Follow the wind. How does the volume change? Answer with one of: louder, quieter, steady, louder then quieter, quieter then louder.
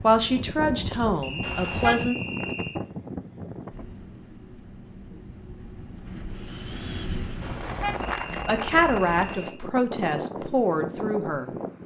quieter then louder.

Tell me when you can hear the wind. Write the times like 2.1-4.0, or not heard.
0.0-11.8.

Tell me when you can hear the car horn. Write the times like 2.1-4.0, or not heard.
1.4-2.0, 7.4-8.1.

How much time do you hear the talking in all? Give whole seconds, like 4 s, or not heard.
5 s.